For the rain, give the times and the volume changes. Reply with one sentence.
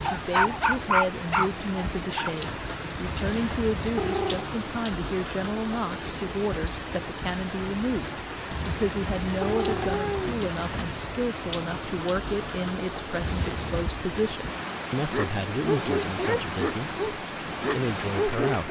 You can hear the rain from 0.0 to 18.6 s, at a steady volume.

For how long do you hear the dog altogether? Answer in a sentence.
You can hear the dog for 6 seconds altogether.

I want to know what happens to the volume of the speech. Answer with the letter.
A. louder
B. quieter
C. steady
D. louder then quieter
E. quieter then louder
C.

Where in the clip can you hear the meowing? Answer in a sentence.
The meowing can be heard from 3.0 to 4.5 s, from 8.5 to 10.9 s and from 13.2 to 13.9 s.